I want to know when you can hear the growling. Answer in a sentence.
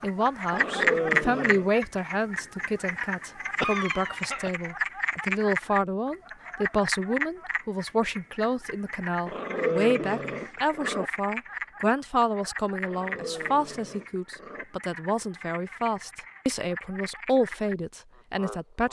You can hear the growling from 0.5 to 1.7 s, from 9.2 to 11.1 s and from 12.8 to 14.7 s.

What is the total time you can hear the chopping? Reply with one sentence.
You can't hear the chopping here.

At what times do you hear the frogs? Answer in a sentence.
You can hear the frogs from 0.0 to 18.8 s.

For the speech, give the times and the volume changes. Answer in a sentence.
You can hear the speech from 0.0 to 18.8 s, at a steady volume.